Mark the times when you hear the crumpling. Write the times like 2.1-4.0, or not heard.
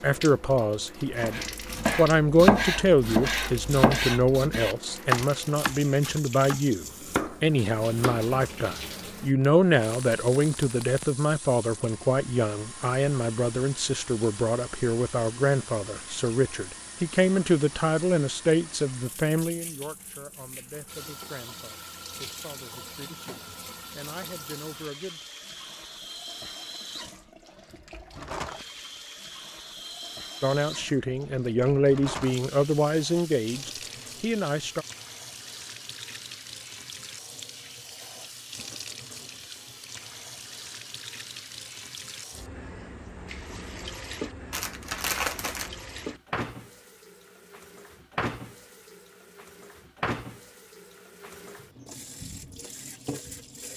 9.4-11.2, 44.5-45.7.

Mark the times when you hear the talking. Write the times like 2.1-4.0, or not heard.
0.0-25.2, 30.4-34.9.